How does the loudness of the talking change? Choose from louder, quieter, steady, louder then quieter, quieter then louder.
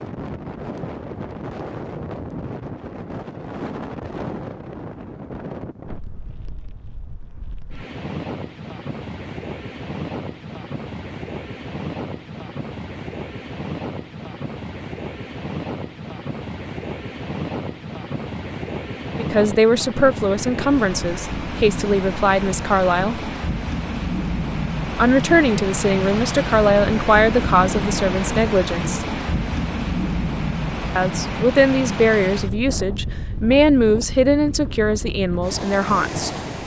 steady.